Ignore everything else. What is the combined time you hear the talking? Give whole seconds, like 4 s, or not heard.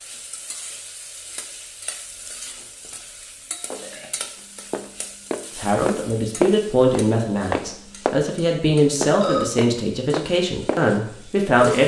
6 s.